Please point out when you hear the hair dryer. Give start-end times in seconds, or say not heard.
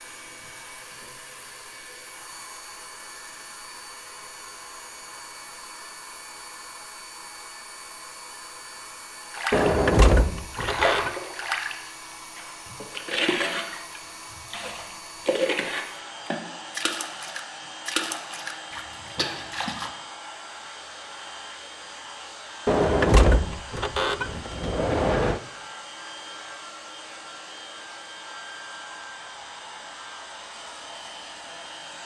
0.0-32.0.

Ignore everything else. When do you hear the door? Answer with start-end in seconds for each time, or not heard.
9.5-11.1, 22.6-25.4.